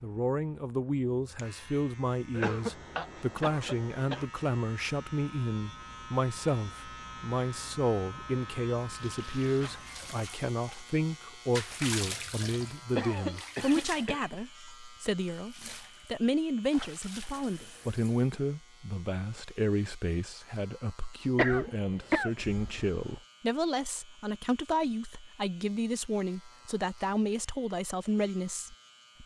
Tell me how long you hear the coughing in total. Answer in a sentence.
You can hear the coughing for 5 seconds altogether.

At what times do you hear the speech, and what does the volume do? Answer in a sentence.
You can hear the speech from 0.0 to 29.2 s, at a steady volume.